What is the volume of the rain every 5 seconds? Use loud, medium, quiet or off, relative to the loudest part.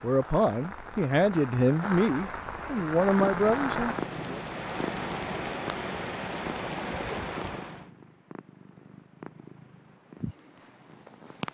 loud, loud, off.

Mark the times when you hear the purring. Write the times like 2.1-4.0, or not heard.
3.0-11.4.